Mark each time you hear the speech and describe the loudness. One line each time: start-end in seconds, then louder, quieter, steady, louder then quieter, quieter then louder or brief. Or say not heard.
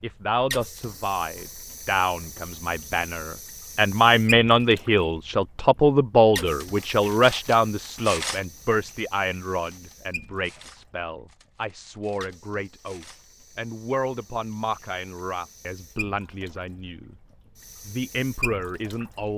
0.0-17.1 louder then quieter
17.9-19.3 brief.